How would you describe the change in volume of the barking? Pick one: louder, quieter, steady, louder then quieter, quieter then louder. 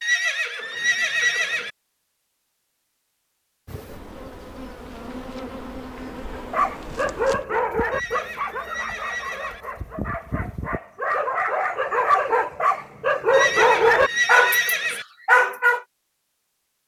quieter then louder.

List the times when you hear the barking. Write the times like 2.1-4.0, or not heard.
6.5-15.8.